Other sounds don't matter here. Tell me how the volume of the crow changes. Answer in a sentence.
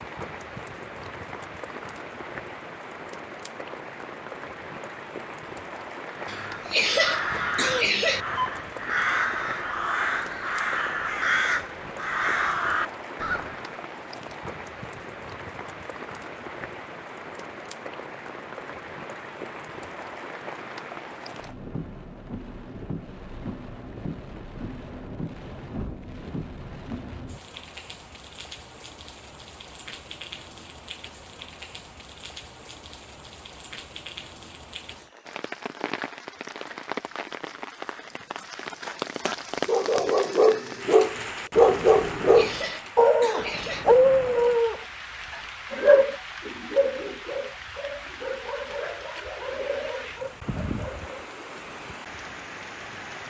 The volume of the crow stays about the same.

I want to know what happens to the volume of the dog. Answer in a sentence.
The volume of the dog goes down.